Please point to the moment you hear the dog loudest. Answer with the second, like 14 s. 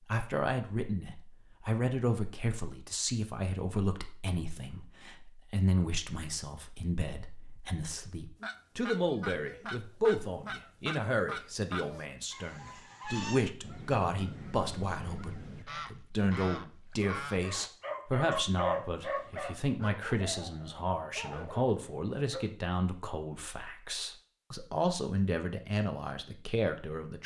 19 s.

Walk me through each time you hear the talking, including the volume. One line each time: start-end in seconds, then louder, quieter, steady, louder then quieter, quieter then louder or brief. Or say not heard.
0.1-27.2 steady.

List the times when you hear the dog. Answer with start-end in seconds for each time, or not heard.
17.0-22.4.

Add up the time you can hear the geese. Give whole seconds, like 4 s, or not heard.
9 s.